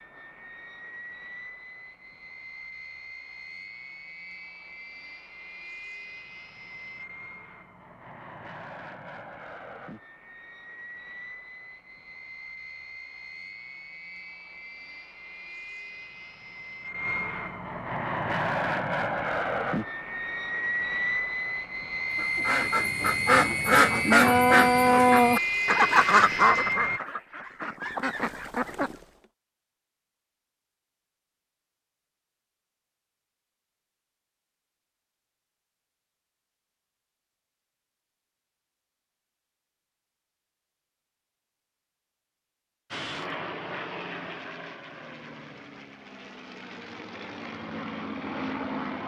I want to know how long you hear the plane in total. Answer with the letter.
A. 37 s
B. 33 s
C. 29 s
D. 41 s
B.